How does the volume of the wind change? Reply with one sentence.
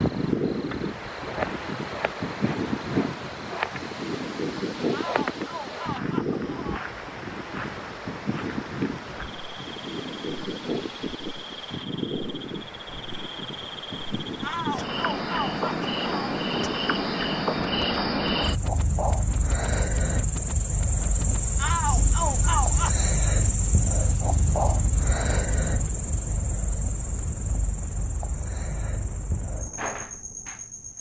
The volume of the wind goes down.